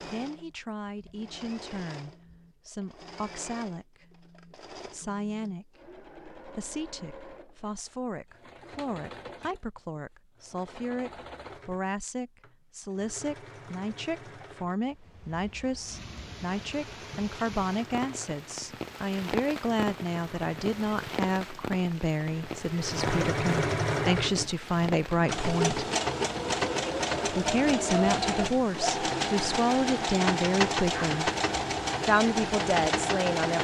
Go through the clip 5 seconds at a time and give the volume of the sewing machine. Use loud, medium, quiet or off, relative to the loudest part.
quiet, quiet, quiet, quiet, loud, loud, loud.